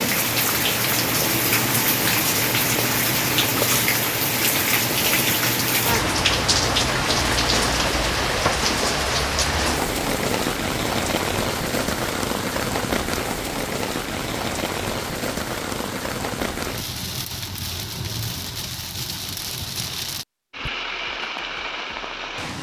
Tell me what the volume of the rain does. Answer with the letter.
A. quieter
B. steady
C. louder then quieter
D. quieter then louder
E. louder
A.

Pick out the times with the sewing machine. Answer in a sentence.
The sewing machine can be heard from 0.2 to 8.2 s.